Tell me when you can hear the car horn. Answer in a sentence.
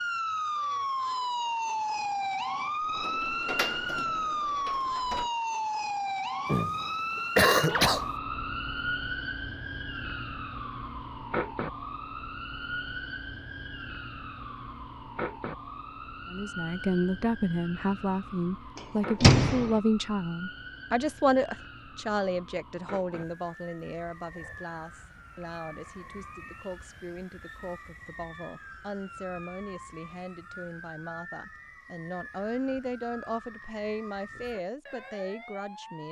You can't hear the car horn here.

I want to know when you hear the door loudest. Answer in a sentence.
The loudest moment of the door is at 19 seconds.